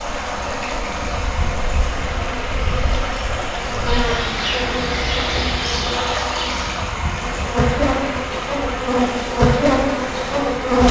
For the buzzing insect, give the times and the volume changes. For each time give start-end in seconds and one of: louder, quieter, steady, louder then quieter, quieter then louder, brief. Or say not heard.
0.0-10.8 louder.